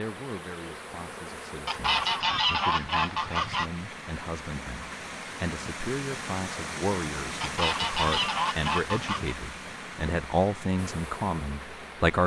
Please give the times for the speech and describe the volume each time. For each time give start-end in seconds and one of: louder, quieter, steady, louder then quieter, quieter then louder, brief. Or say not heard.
0.0-12.2 louder.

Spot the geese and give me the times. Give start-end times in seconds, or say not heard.
1.6-3.7, 7.4-9.3.